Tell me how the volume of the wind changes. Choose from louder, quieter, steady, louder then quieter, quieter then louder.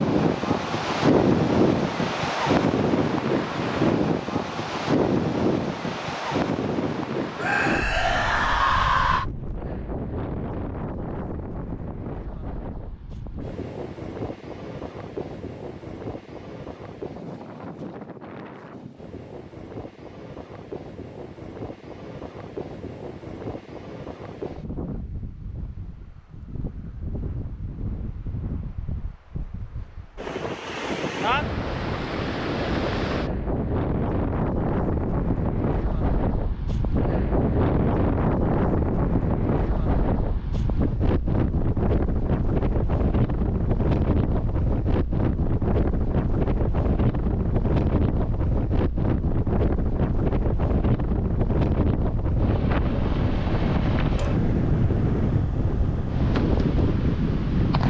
quieter then louder.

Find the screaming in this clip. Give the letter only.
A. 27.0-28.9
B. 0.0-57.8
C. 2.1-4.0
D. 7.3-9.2
D.